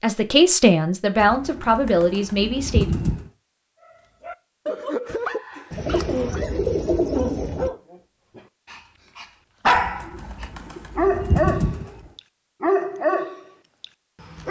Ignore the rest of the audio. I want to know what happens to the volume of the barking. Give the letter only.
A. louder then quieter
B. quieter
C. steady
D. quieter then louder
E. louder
E.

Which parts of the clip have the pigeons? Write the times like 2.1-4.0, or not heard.
1.1-3.3, 5.7-7.7, 9.8-12.1.